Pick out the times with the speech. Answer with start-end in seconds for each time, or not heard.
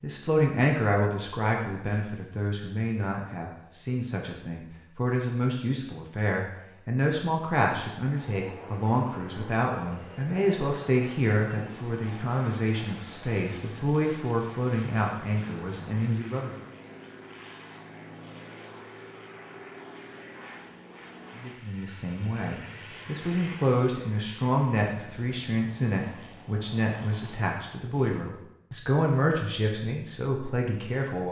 0.0-16.5, 21.4-31.2.